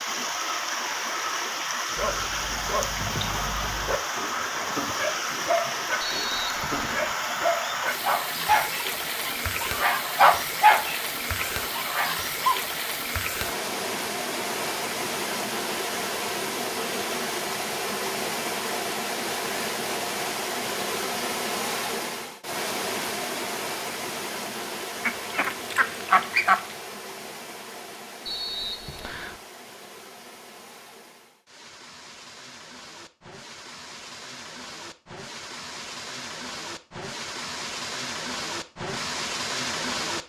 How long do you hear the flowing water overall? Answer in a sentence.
You can hear the flowing water for 40 seconds altogether.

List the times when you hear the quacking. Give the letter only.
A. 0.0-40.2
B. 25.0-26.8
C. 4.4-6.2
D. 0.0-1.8
B.